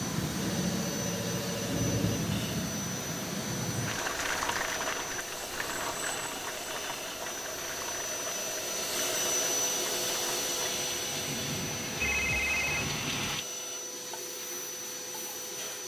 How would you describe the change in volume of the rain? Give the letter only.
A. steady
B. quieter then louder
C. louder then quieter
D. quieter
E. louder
B.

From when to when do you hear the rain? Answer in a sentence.
The rain can be heard from 0.0 to 13.4 s.